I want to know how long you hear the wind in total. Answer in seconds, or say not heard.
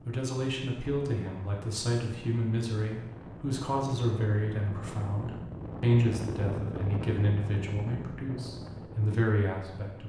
10 s.